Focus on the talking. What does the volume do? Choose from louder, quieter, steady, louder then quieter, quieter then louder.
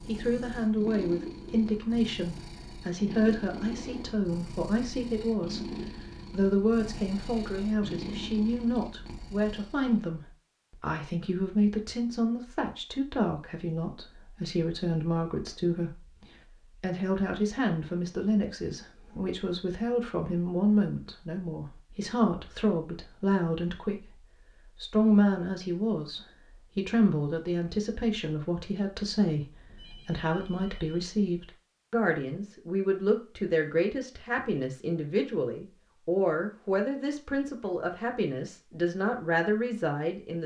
steady.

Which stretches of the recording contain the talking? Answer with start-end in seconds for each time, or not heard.
0.1-5.7, 6.3-16.1, 16.8-40.4.